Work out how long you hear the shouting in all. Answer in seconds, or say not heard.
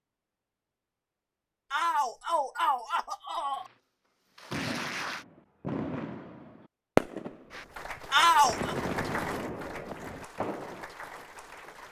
3 s.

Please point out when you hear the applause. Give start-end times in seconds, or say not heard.
3.5-5.2, 7.5-11.8.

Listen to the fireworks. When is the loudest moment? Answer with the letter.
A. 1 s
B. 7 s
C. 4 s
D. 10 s
B.